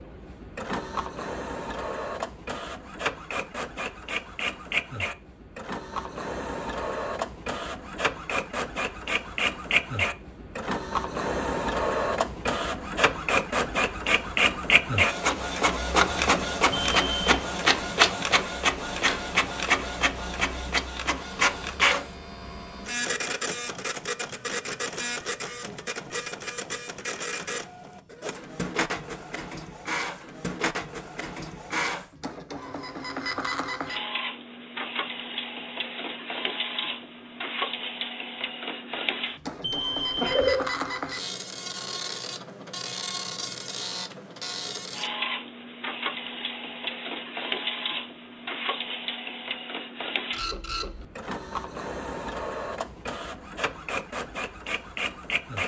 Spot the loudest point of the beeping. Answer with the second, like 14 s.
40 s.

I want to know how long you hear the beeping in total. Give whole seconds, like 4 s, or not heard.
2 s.